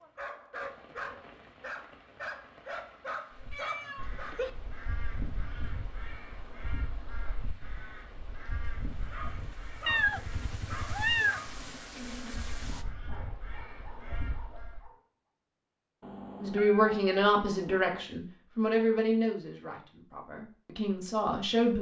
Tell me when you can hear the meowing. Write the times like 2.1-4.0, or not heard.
3.5-4.5, 9.8-11.4, 16.0-18.1.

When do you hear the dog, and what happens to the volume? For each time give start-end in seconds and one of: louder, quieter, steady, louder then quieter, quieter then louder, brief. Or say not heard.
0.0-4.4 steady
9.1-15.1 quieter.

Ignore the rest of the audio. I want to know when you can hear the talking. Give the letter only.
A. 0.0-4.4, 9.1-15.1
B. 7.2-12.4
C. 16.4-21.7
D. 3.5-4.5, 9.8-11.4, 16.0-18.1
C.